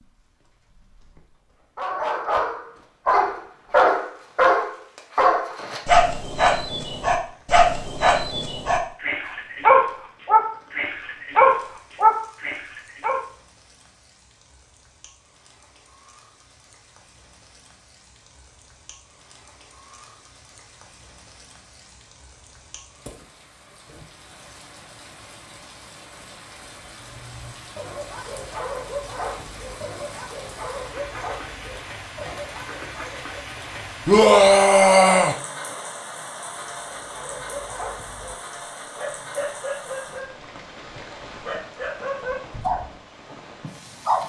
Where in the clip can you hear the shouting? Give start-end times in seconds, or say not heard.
34.0-35.4.